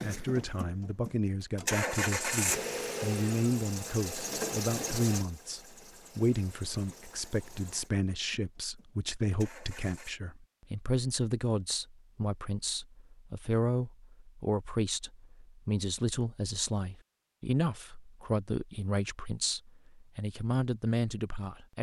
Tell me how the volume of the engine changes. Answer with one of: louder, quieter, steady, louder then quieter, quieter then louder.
quieter.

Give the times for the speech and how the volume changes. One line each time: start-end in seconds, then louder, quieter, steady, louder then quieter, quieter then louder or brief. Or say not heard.
0.0-21.7 steady.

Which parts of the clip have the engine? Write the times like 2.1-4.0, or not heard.
0.0-10.2.